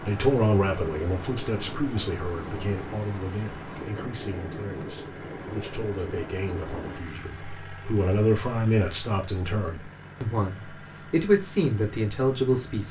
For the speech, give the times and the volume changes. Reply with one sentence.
You can hear the speech from 0.0 to 12.8 s, getting quieter then louder.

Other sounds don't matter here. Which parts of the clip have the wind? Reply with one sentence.
You can hear the wind from 0.0 to 7.0 s.